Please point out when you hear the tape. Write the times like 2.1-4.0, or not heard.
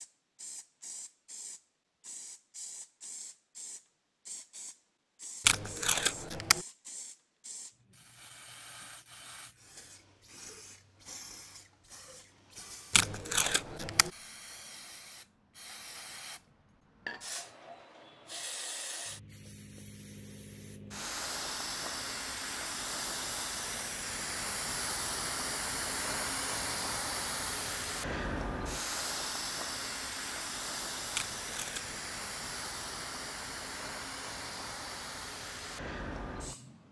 5.5-6.7, 12.9-14.1, 31.1-32.0.